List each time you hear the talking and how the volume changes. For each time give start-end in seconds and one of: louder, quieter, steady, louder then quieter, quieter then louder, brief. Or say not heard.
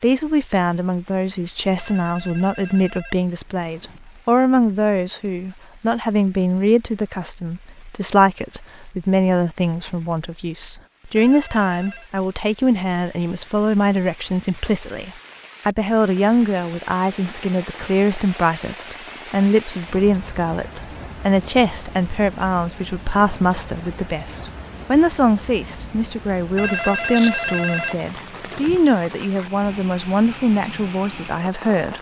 0.0-31.9 steady.